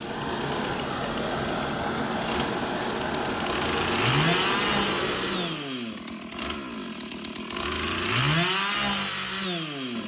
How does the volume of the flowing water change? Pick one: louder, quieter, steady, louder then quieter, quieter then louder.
steady.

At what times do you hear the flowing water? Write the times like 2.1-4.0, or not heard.
0.0-5.7.